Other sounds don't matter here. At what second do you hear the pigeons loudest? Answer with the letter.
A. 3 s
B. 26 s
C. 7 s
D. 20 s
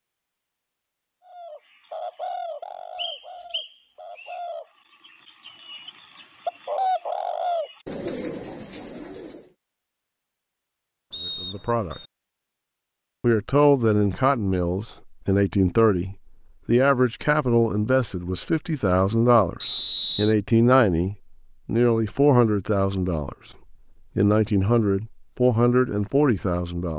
C.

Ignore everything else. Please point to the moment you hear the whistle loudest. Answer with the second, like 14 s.
20 s.